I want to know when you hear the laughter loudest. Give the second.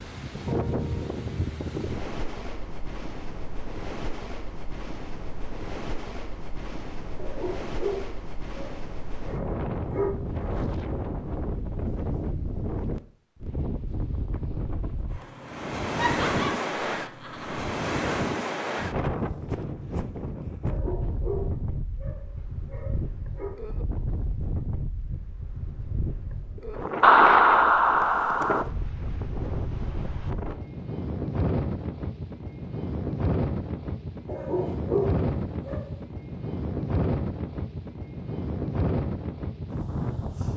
27 s.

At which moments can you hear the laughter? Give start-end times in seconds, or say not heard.
15.9-17.6, 27.0-28.6.